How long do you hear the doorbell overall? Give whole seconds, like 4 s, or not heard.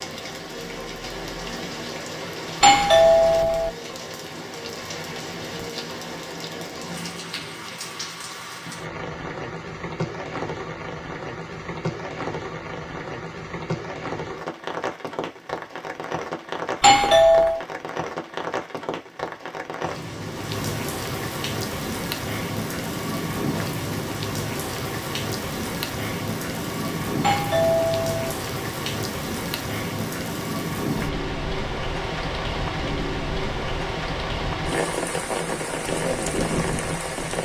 3 s.